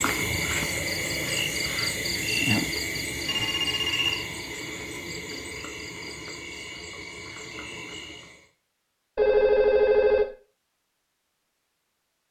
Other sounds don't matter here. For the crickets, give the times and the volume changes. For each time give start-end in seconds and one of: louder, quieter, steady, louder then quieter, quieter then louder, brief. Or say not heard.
0.0-8.5 quieter.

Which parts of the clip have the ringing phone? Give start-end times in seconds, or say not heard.
3.2-4.2, 9.2-10.2.